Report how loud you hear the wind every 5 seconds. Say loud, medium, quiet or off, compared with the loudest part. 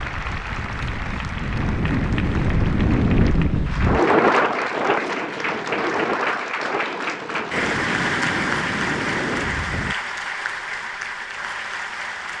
loud, medium, off.